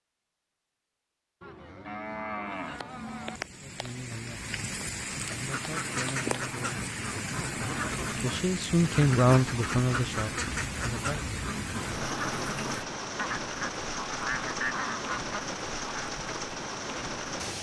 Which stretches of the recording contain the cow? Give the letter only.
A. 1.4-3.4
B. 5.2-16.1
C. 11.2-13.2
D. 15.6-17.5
A.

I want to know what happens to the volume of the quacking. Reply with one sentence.
The volume of the quacking stays about the same.